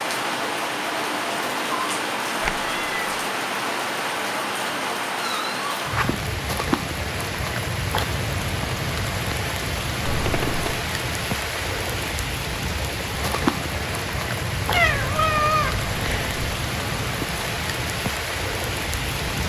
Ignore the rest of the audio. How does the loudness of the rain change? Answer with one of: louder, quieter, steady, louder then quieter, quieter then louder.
steady.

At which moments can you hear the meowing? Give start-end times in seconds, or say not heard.
2.4-3.0, 10.1-10.8, 14.7-16.4.